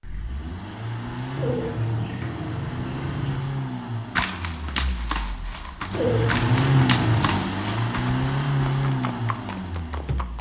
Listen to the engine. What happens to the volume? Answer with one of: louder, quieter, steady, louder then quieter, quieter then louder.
quieter then louder.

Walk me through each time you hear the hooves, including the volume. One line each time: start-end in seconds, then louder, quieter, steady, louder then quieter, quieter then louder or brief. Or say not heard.
4.2-10.3 quieter.